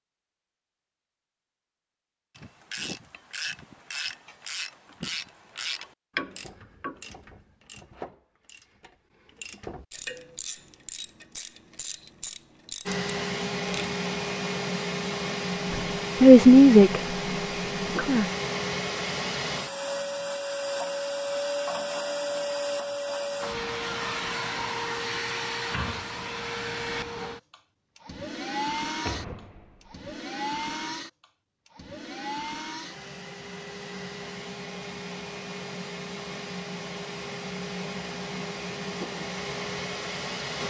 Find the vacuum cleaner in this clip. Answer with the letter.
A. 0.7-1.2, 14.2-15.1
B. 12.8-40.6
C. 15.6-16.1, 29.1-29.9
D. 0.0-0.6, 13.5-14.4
B.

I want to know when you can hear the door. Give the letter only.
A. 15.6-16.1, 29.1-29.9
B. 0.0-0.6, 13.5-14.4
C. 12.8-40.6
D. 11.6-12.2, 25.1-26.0
A.